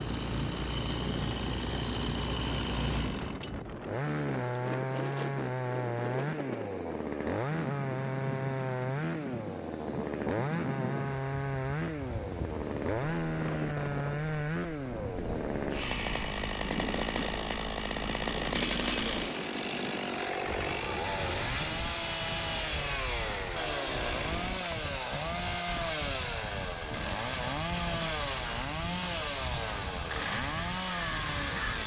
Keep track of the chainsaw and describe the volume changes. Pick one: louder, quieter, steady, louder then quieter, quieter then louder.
steady.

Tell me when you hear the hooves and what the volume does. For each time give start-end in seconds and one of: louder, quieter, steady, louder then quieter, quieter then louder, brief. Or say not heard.
not heard.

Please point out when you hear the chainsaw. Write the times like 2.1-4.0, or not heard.
0.0-31.8.